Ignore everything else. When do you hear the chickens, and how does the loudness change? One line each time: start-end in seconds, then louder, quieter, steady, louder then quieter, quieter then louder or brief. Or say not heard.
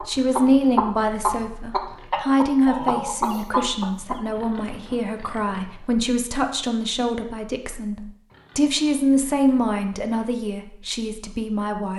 0.0-4.5 quieter.